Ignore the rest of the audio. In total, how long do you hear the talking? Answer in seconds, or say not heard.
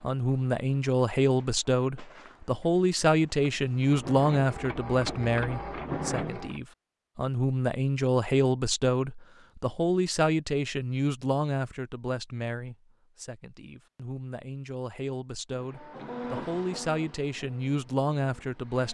19 s.